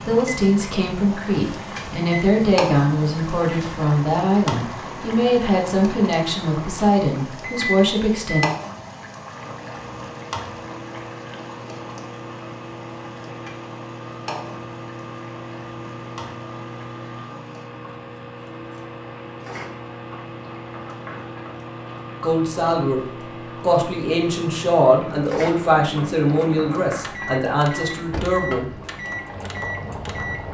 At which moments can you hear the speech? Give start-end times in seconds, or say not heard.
0.1-8.4, 22.2-23.0, 23.6-28.7.